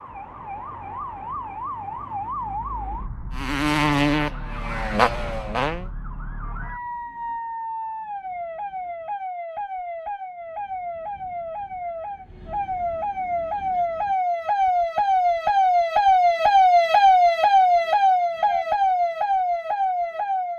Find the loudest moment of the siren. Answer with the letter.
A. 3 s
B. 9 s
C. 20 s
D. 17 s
D.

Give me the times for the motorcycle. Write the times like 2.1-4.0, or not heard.
3.3-5.9.